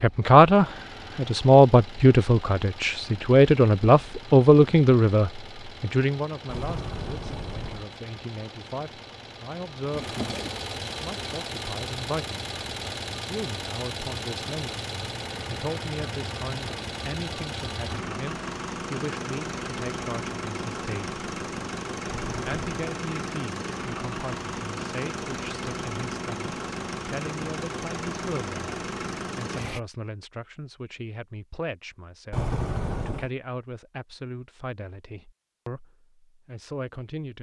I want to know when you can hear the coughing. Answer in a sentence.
You can hear the coughing from 9.9 to 10.6 s.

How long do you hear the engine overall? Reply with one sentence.
The engine can be heard for 30 seconds in total.